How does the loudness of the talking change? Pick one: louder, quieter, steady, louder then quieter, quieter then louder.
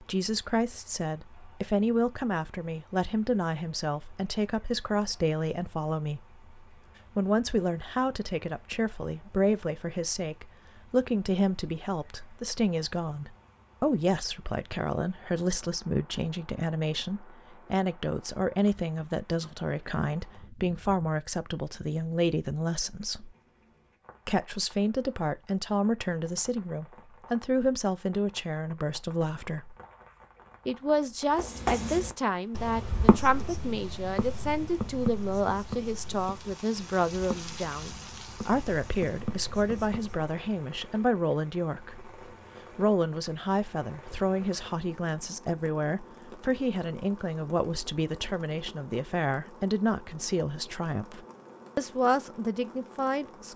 steady.